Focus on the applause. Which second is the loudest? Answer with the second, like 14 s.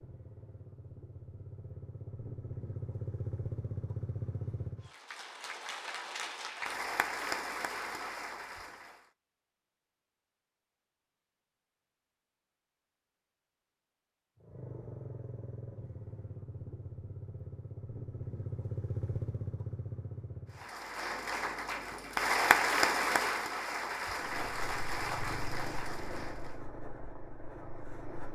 23 s.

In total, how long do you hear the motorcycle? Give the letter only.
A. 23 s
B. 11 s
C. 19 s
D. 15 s
D.